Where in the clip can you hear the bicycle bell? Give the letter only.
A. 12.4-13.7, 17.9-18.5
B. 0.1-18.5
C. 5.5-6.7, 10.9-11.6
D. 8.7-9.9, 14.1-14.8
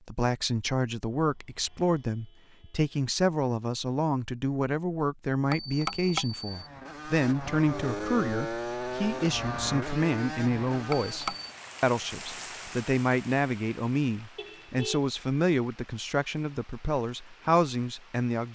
C.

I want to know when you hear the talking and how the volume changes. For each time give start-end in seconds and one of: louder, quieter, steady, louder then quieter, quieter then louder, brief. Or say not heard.
0.1-18.5 steady.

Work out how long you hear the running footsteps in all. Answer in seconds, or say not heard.
not heard.